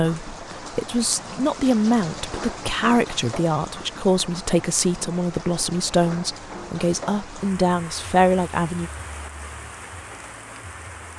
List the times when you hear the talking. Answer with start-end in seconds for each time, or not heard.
0.0-8.9.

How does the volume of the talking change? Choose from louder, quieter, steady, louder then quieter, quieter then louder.
steady.